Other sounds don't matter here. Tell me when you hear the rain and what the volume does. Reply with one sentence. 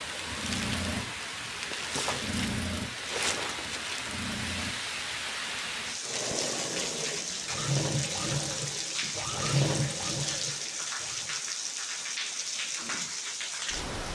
The rain can be heard from 0.0 to 14.0 s, at a steady volume.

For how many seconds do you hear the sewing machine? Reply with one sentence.
You can hear the sewing machine for 11 seconds altogether.